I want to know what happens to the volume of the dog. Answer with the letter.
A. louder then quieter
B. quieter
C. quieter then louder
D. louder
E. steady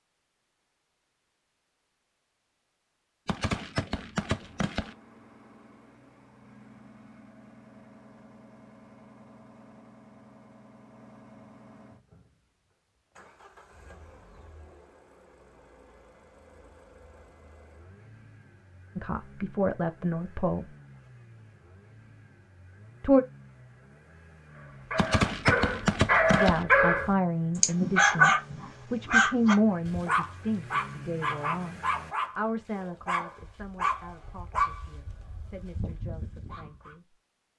B.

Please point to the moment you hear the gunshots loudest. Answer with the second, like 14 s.
25 s.